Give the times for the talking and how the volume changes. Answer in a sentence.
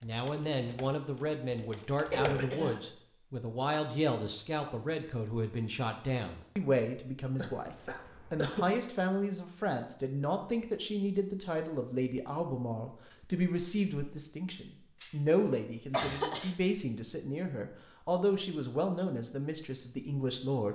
You can hear the talking from 0.0 to 20.7 s, at a steady volume.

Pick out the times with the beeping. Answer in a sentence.
You can't hear the beeping here.